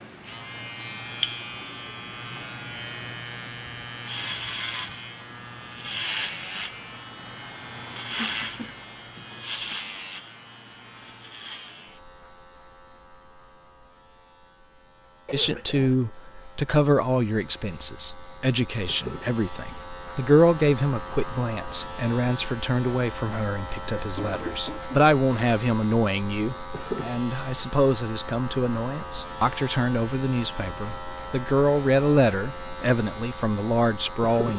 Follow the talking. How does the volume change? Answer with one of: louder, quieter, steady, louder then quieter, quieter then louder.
steady.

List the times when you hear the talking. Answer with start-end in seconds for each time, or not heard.
15.3-34.5.